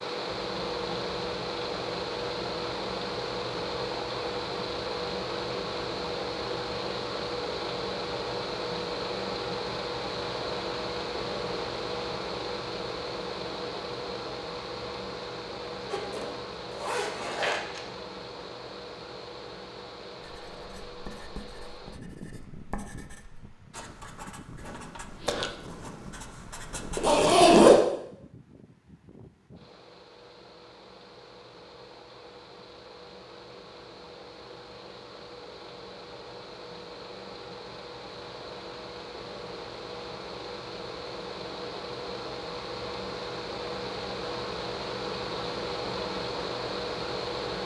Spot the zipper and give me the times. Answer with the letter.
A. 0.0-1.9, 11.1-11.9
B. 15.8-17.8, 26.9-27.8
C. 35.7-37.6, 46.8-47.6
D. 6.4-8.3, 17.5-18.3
B.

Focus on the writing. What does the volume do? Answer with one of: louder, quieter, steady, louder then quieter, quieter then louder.
louder then quieter.